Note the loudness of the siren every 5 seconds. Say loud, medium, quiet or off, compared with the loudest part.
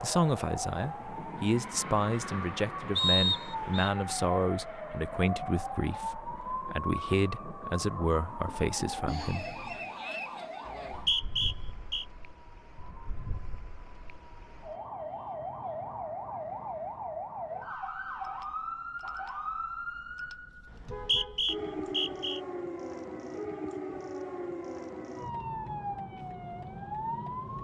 loud, loud, medium, loud, loud, loud.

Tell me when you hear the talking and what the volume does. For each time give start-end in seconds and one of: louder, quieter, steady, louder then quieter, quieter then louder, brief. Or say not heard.
0.0-9.6 steady.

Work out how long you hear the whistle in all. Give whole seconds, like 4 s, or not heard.
4 s.